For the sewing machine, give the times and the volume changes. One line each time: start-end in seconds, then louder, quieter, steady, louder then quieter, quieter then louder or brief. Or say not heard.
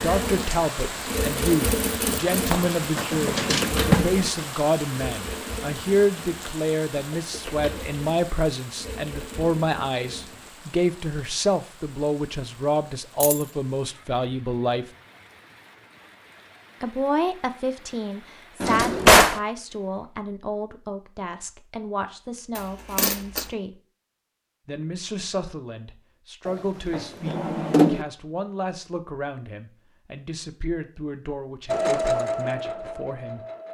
0.0-10.5 quieter
31.6-33.6 brief.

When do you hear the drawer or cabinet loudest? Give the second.
19 s.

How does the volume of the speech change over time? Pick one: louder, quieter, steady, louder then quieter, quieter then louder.
quieter.